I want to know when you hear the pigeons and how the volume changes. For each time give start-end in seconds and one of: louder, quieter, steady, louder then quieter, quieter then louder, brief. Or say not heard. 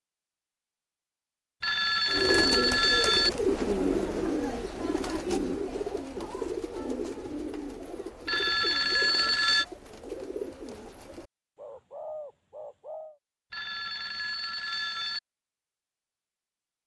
2.0-13.2 quieter.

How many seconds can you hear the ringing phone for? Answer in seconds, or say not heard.
5 s.